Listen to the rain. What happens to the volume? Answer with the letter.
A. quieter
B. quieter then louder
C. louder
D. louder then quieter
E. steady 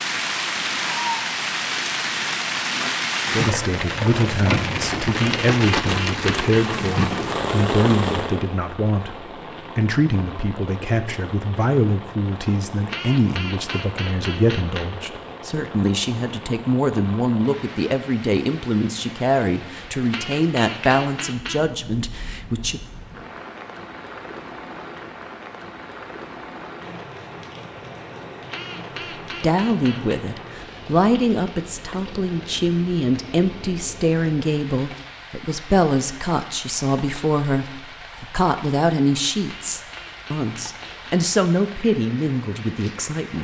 A.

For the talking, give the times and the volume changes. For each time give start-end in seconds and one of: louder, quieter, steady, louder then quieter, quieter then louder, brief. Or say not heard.
3.3-22.8 steady
29.4-43.3 steady.